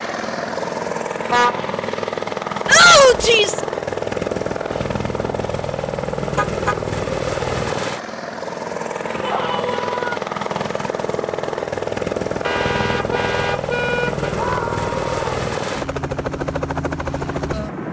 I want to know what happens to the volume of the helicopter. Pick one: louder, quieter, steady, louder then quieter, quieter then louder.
steady.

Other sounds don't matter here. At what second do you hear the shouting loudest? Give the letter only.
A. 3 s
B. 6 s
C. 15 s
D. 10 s
A.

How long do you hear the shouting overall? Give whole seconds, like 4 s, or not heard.
3 s.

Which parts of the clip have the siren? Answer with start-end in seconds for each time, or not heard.
not heard.